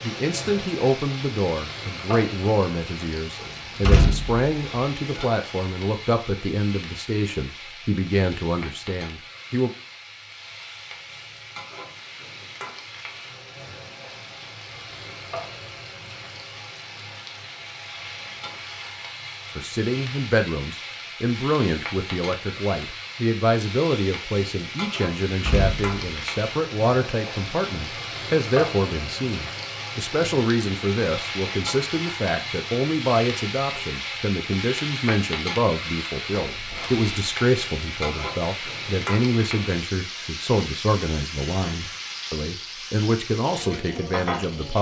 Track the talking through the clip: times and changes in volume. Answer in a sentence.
The talking can be heard from 0.0 to 9.7 s, at a steady volume; and from 19.6 to 44.7 s, at a steady volume.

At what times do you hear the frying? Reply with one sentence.
You can hear the frying from 0.0 to 44.7 s.